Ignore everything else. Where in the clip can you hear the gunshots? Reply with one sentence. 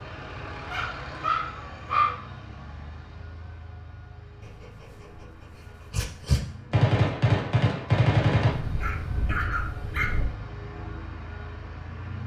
You can hear the gunshots from 6.7 to 8.6 s.